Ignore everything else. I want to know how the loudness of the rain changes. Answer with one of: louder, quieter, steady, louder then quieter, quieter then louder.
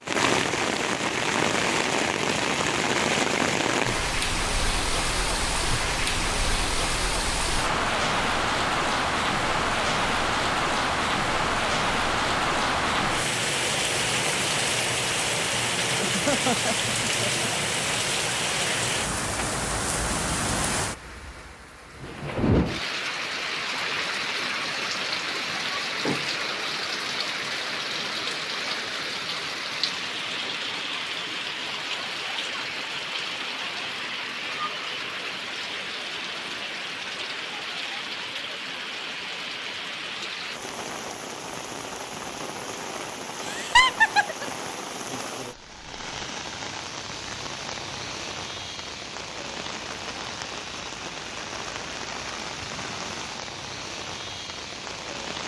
quieter.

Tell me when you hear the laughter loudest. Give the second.
44 s.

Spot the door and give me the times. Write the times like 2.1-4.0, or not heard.
25.9-26.6.